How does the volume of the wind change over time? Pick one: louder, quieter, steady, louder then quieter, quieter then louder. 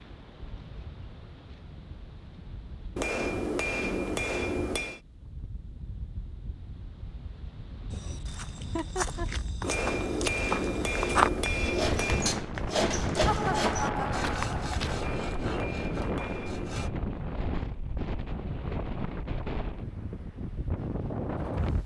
louder.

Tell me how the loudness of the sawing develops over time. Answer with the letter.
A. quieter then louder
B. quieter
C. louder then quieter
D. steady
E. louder
B.